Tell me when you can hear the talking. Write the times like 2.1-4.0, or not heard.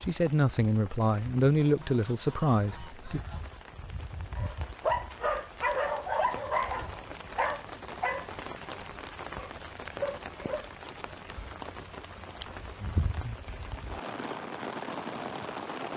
0.0-3.2.